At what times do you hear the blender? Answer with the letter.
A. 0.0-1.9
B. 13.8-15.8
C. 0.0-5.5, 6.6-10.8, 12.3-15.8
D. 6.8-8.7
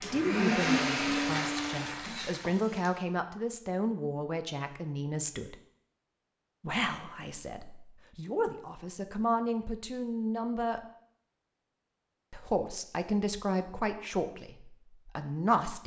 A.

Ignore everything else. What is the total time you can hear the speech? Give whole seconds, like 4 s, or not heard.
13 s.